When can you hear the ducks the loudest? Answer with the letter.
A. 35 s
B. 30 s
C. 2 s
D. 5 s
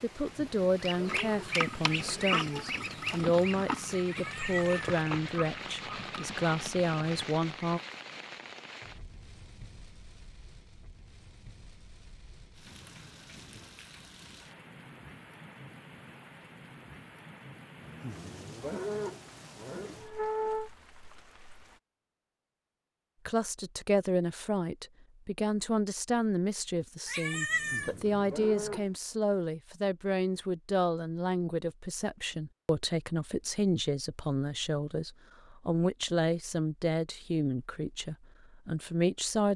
C.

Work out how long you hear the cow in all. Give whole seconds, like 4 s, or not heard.
7 s.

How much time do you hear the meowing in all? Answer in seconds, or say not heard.
2 s.